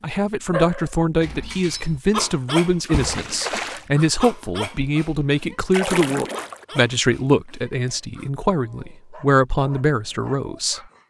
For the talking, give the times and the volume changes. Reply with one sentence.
You can hear the talking from 0.0 to 10.8 s, at a steady volume.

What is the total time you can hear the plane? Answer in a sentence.
You can't hear the plane here.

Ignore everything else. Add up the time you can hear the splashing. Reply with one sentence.
The splashing can be heard for 2 seconds in total.